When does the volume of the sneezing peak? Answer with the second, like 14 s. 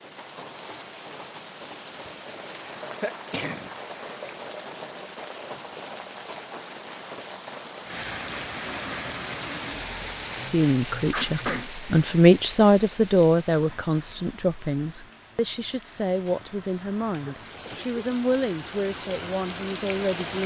11 s.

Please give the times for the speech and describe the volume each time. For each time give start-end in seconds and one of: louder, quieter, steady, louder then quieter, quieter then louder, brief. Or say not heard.
10.5-20.4 quieter.